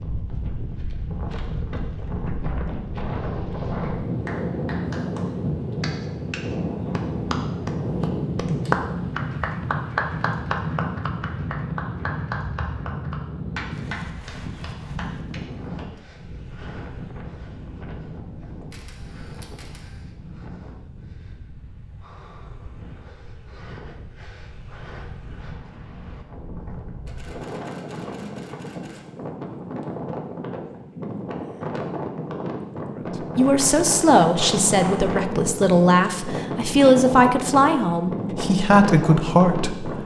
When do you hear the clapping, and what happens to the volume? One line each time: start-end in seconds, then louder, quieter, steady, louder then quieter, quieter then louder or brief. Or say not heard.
3.8-15.8 louder then quieter.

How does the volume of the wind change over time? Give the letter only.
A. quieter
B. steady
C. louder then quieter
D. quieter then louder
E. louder
D.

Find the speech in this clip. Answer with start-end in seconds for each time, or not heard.
33.4-40.0.